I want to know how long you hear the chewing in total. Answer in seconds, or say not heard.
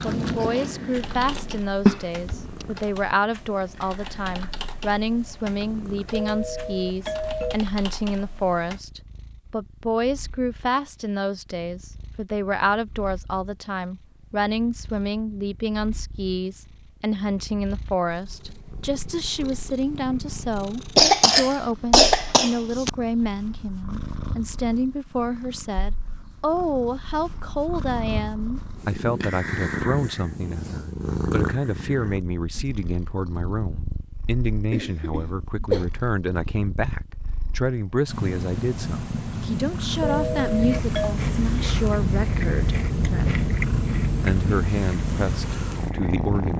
8 s.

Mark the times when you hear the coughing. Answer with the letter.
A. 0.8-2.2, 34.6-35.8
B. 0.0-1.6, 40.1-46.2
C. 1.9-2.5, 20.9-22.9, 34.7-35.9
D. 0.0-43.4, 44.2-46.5
C.